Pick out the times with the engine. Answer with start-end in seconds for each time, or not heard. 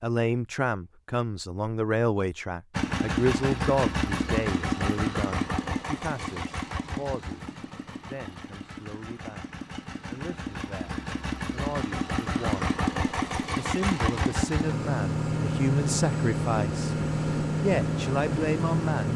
2.7-19.1.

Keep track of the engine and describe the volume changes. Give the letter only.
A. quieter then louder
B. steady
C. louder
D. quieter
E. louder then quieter
A.